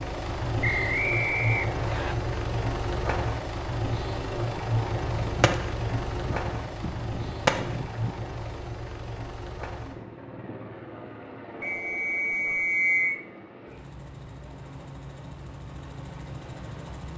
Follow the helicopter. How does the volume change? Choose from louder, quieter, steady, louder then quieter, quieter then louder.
quieter.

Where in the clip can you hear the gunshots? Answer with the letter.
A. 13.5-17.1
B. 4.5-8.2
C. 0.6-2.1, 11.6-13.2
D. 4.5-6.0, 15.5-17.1
B.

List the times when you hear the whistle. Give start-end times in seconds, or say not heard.
0.6-2.1, 11.6-13.2.